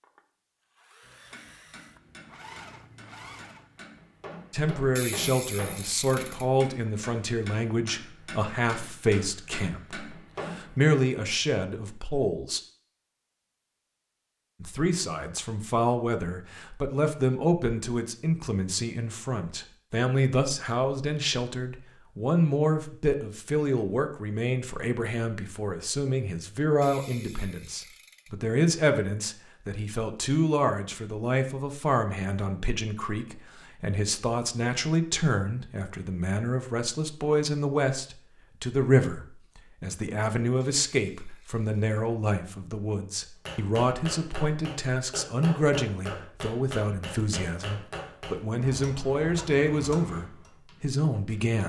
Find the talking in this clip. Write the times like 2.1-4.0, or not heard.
4.5-12.6, 14.6-51.6.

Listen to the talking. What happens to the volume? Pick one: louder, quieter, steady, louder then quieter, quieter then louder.
steady.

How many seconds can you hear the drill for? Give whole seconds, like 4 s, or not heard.
4 s.